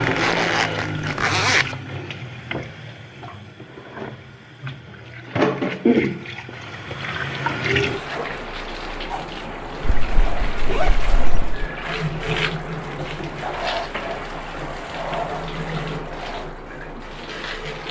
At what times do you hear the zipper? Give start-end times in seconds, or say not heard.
0.0-1.6, 9.8-11.7.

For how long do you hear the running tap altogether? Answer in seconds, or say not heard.
18 s.